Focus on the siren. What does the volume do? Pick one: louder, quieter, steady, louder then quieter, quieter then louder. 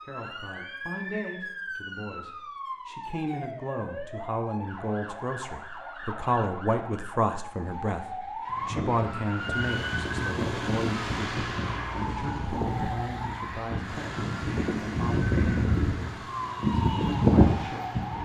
louder.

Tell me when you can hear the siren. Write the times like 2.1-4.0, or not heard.
0.0-18.2.